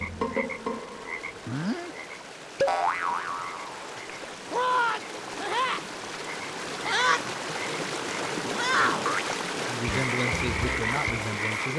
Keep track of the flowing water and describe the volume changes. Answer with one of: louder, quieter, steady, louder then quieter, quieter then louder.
louder.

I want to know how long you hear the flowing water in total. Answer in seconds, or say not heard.
12 s.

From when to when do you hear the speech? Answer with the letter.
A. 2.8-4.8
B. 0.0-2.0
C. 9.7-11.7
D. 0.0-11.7
C.